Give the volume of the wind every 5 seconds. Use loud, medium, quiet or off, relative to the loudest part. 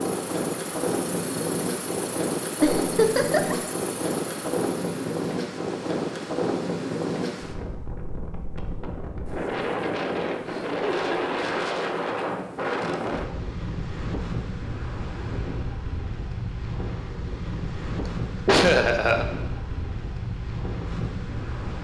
loud, loud, loud, medium, medium.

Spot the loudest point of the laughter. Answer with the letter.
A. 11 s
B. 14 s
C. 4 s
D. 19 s
D.